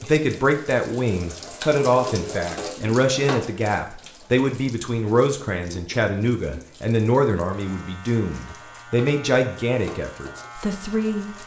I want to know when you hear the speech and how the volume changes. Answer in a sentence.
The speech can be heard from 0.0 to 11.3 s, at a steady volume.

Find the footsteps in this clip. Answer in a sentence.
The footsteps can't be heard in this clip.